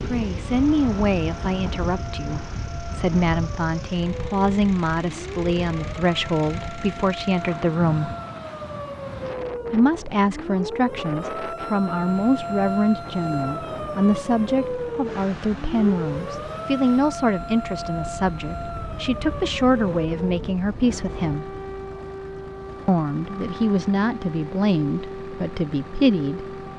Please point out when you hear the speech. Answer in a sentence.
The speech can be heard from 0.1 to 8.2 s, from 9.7 to 21.5 s and from 22.9 to 26.6 s.